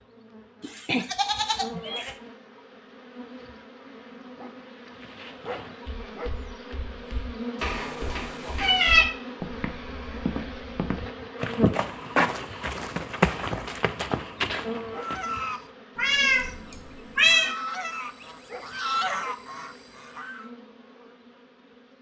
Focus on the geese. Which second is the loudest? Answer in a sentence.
The loudest moment of the geese is at 19 seconds.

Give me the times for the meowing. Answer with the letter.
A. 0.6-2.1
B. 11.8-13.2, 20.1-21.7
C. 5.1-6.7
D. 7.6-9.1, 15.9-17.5
D.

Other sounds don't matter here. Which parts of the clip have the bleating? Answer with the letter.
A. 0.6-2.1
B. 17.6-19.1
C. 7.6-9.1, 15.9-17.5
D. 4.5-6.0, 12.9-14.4
A.